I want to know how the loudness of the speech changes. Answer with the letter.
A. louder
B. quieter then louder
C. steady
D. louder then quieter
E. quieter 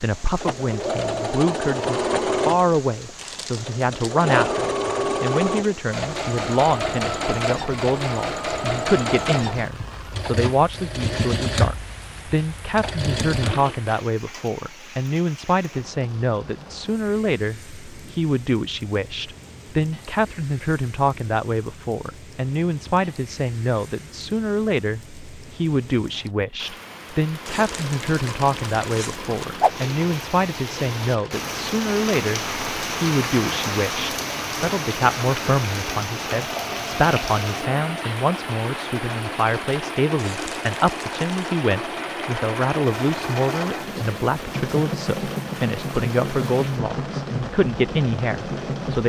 C.